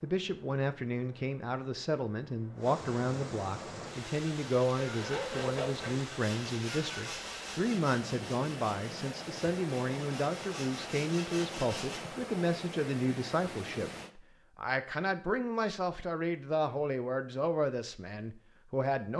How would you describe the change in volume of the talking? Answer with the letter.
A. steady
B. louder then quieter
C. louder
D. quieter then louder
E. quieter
A.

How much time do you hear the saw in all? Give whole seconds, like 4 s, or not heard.
7 s.